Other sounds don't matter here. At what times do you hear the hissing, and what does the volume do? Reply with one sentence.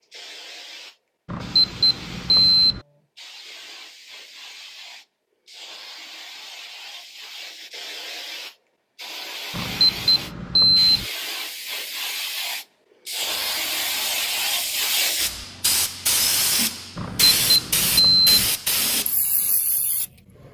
The hissing can be heard from 0.0 to 20.4 s, getting louder.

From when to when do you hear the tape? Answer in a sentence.
You can't hear the tape here.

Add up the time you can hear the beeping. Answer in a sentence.
You can hear the beeping for 5 seconds altogether.